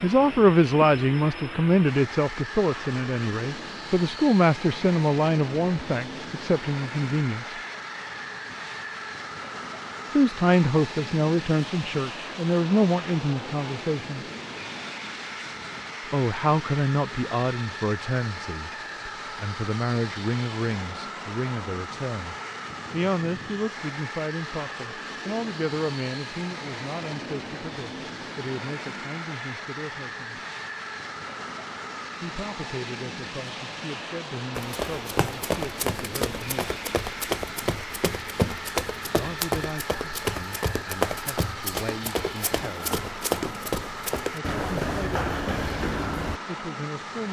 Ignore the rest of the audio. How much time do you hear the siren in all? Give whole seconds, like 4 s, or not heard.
not heard.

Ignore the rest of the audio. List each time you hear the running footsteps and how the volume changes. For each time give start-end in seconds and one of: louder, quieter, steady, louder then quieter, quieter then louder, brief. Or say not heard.
34.5-46.4 steady.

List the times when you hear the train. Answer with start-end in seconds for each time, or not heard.
0.0-47.2.